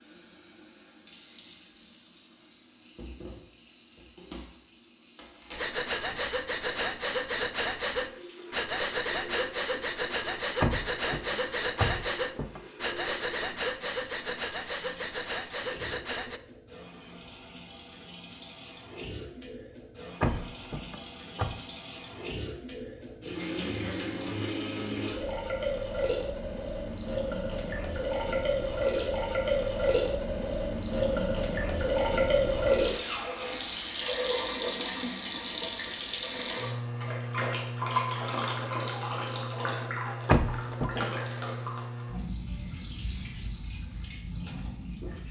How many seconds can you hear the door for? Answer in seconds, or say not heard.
4 s.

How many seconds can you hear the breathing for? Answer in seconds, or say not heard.
11 s.